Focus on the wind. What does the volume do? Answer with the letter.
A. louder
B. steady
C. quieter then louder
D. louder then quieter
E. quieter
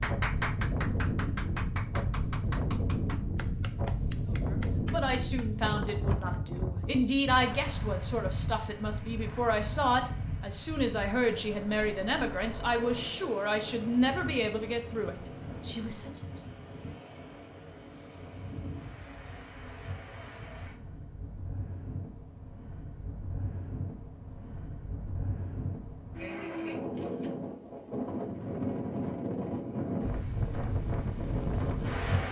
C.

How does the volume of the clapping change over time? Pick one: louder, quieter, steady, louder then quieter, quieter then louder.
quieter.